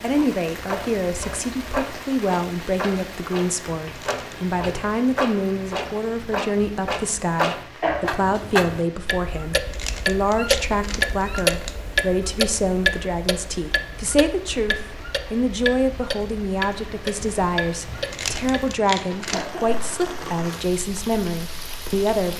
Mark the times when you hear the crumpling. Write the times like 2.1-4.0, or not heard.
3.9-4.4, 9.5-11.8, 17.9-19.5.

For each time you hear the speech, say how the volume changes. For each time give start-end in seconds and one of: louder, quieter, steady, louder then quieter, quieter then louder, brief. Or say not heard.
0.0-22.3 steady.